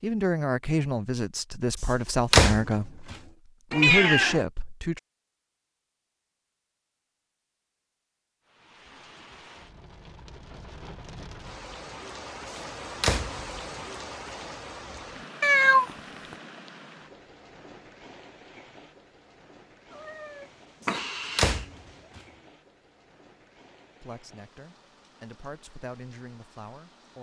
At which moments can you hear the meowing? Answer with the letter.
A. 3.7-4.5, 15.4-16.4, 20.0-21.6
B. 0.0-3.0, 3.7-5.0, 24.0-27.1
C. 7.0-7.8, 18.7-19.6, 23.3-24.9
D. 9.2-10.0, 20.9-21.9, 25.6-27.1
A.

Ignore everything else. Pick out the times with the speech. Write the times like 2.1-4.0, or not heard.
0.0-3.0, 3.7-5.0, 24.0-27.1.